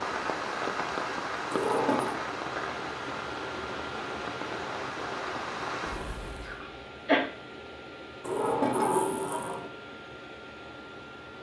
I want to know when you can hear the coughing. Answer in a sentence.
The coughing can be heard from 6.4 to 7.2 s.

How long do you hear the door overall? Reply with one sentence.
The door can be heard for 2 seconds in total.